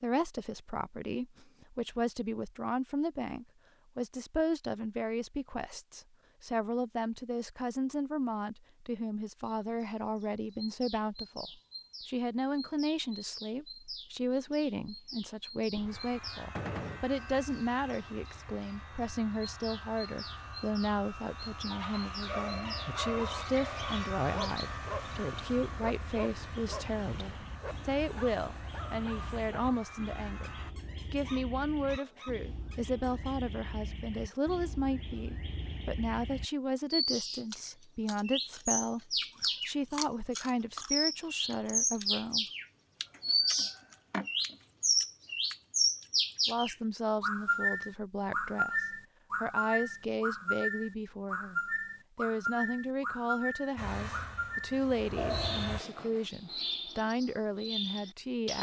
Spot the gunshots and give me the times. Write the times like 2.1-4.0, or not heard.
16.6-17.1.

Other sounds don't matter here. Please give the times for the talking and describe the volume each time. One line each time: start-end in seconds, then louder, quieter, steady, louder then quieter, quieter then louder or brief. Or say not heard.
0.0-30.5 steady
31.1-42.5 steady
46.5-58.5 steady.